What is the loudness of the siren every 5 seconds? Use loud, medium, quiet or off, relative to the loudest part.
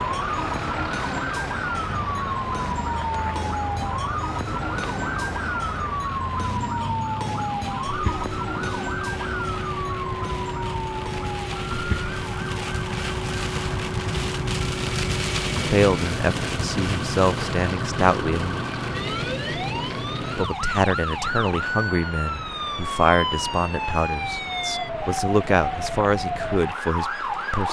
loud, loud, medium, medium, loud, loud.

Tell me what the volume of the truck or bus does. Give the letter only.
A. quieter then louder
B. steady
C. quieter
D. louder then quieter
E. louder
B.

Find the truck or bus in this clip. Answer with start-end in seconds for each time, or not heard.
0.0-20.5.